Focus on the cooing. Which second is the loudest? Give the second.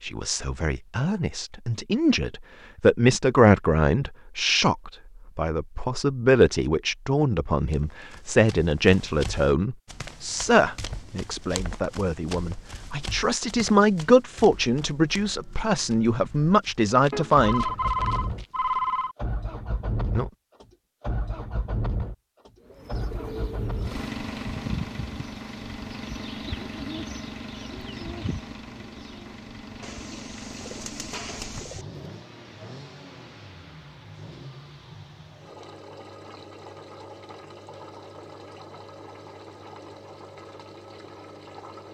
25 s.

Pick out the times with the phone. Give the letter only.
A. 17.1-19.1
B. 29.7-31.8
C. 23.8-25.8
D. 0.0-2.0
A.